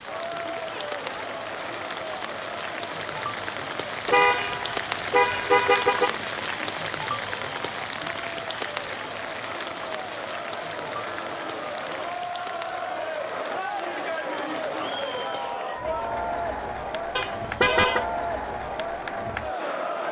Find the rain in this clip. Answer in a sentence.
You can hear the rain from 0.0 to 15.6 s.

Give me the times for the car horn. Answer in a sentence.
The car horn can be heard from 4.0 to 6.2 s and from 17.1 to 18.1 s.